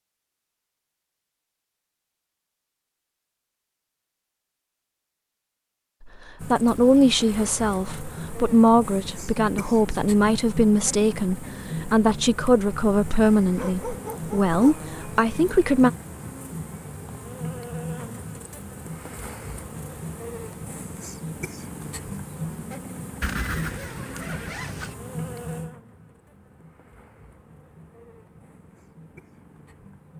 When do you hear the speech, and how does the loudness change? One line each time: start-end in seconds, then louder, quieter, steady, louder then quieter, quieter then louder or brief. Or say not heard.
6.4-15.9 steady.